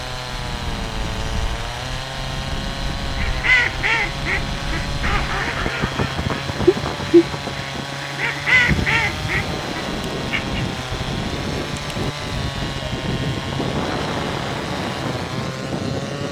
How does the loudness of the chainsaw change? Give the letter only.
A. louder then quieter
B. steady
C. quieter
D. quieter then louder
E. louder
B.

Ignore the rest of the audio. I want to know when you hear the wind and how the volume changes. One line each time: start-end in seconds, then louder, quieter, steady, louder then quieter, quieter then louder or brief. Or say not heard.
0.0-16.2 louder.